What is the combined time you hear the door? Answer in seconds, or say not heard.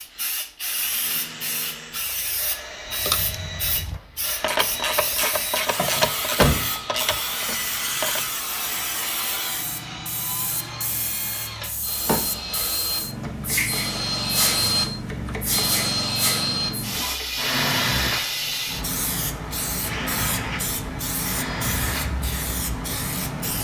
2 s.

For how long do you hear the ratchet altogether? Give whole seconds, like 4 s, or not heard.
5 s.